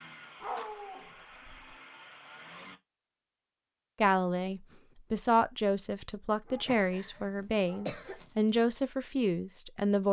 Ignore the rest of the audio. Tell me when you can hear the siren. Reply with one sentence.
You can't hear the siren here.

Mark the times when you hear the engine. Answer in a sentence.
The engine can be heard from 0.0 to 2.8 s.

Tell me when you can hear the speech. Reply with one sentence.
The speech can be heard from 4.0 to 10.0 s.